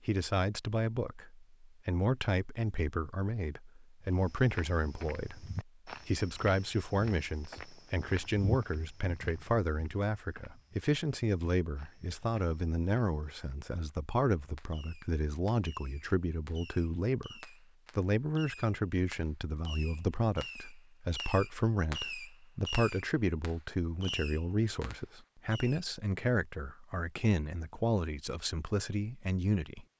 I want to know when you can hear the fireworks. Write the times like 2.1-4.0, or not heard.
14.6-25.8.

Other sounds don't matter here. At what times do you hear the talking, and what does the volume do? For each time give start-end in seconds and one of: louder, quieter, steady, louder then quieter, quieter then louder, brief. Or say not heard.
0.1-29.9 steady.